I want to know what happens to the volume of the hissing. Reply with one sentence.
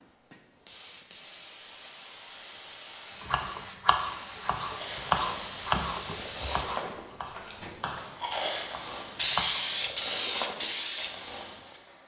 The volume of the hissing goes up.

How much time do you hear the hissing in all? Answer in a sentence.
You can hear the hissing for 12 seconds altogether.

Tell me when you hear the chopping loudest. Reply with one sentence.
The loudest moment of the chopping is at 5 seconds.